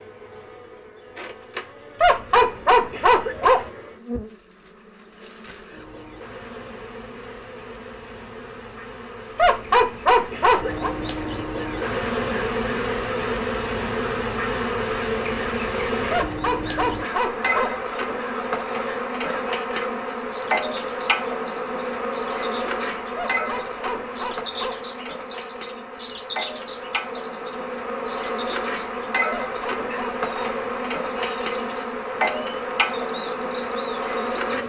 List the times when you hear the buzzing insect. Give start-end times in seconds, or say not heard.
0.0-34.6.